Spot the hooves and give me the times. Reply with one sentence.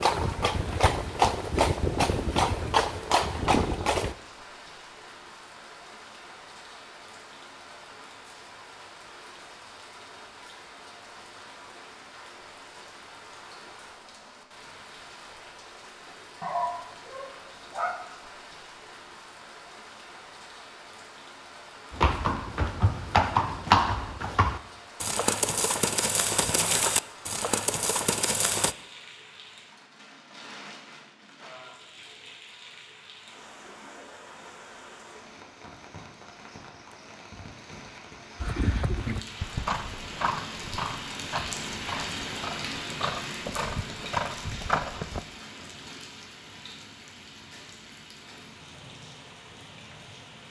The hooves can be heard from 0.0 to 4.2 s, from 21.9 to 28.8 s and from 38.4 to 45.2 s.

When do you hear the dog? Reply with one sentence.
The dog can be heard from 16.4 to 17.9 s.